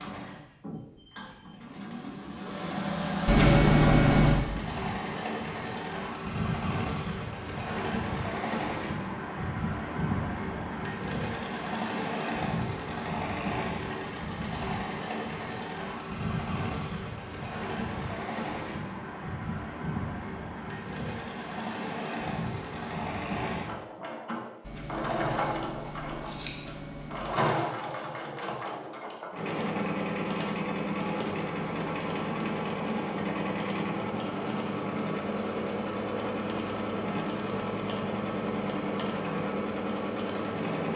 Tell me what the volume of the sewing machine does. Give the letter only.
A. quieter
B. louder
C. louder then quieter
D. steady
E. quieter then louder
D.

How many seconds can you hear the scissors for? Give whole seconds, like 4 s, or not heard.
4 s.